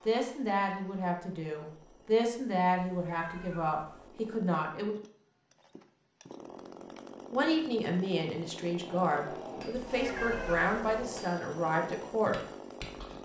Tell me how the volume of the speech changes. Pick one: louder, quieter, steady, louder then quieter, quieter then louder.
steady.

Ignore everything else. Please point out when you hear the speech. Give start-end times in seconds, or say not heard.
0.1-5.0, 7.3-12.3.